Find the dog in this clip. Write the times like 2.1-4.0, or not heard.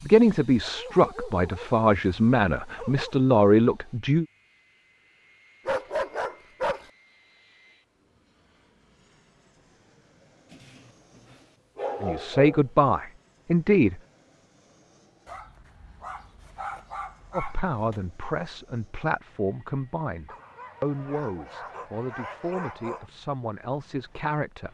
0.6-1.8, 2.8-3.2, 5.7-6.9, 10.5-12.7, 15.2-18.1, 20.2-23.1.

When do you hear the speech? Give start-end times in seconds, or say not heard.
0.0-4.2, 12.0-14.0, 17.3-24.6.